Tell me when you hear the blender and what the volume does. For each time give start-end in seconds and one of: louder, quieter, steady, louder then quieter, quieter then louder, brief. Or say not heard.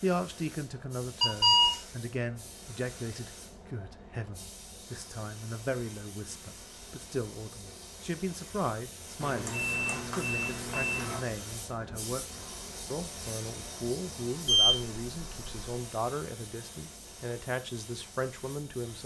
not heard.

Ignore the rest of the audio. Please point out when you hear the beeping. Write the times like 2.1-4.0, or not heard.
1.2-1.8, 9.2-11.2, 14.4-15.6.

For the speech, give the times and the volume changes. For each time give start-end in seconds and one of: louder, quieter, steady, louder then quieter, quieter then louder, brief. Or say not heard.
0.0-19.0 steady.